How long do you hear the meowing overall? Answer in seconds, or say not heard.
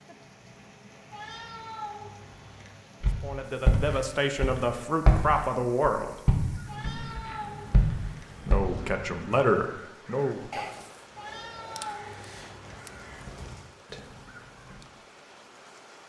5 s.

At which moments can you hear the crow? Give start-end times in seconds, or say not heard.
6.4-14.9.